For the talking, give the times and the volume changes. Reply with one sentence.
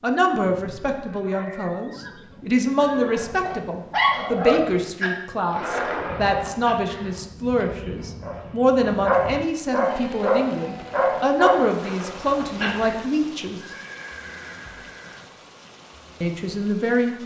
You can hear the talking from 0.0 to 13.6 s, at a steady volume; and briefly from 16.2 to 17.2 s.